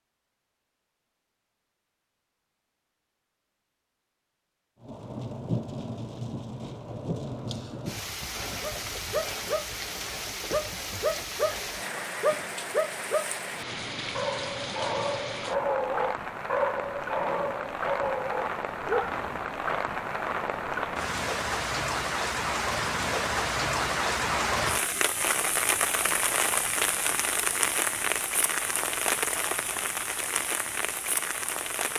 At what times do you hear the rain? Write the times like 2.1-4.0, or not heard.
4.8-31.9.